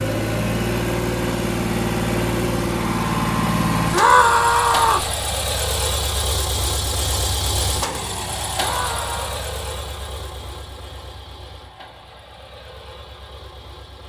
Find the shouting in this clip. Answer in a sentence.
The shouting can be heard from 3.9 to 5.1 s and from 8.6 to 9.4 s.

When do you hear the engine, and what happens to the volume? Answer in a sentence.
The engine can be heard from 0.0 to 14.0 s, getting quieter.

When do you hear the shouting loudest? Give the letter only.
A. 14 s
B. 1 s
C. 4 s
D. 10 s
C.